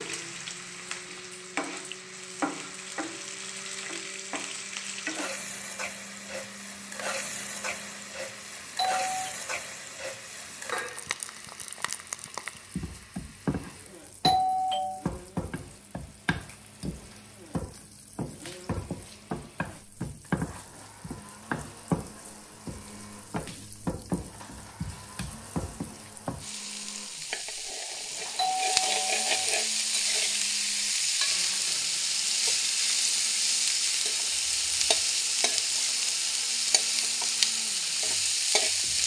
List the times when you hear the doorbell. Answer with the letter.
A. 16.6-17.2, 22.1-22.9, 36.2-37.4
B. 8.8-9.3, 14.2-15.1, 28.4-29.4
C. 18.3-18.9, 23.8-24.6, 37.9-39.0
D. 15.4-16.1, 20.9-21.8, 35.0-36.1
B.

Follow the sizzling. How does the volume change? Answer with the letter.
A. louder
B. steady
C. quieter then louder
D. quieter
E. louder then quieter
A.